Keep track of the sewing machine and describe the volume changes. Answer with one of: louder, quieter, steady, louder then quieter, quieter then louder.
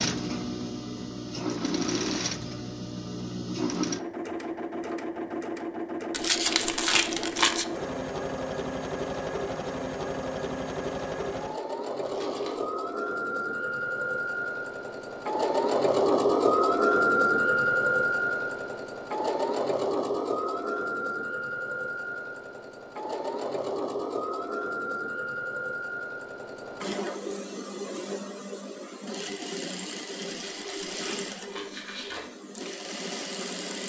louder then quieter.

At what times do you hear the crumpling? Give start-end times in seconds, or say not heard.
6.1-7.7, 12.1-12.7, 30.5-32.3.